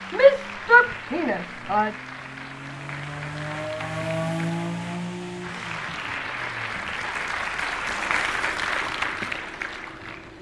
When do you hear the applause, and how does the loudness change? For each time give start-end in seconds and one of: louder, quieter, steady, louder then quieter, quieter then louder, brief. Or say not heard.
0.0-10.3 louder.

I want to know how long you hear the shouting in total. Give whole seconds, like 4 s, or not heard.
2 s.